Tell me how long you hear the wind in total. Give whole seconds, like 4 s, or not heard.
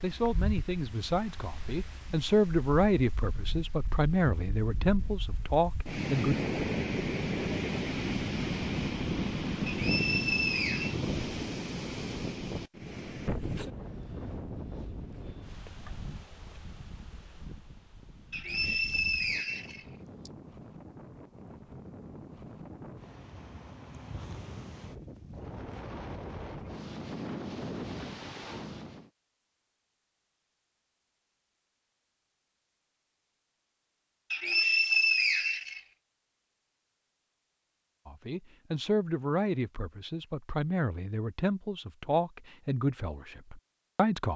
29 s.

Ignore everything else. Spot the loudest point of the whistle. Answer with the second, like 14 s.
35 s.